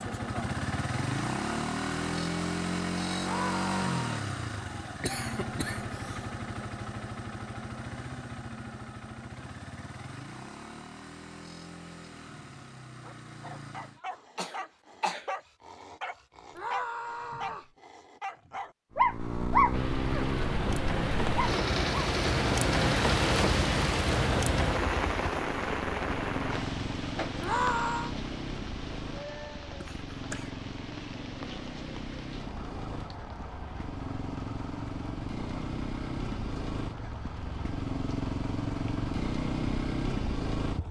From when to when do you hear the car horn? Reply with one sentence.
You can't hear the car horn here.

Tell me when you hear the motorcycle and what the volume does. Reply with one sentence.
You can hear the motorcycle from 0.0 to 14.0 s, getting quieter; and from 18.9 to 40.8 s, getting quieter then louder.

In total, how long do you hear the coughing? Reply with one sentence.
You can hear the coughing for 3 seconds altogether.